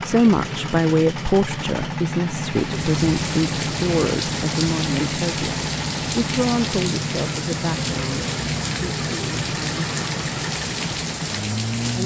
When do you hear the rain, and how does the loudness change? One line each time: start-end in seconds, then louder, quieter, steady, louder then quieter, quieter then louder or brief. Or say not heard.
2.5-12.0 steady.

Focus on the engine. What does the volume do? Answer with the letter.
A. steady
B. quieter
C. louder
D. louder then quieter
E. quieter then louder
A.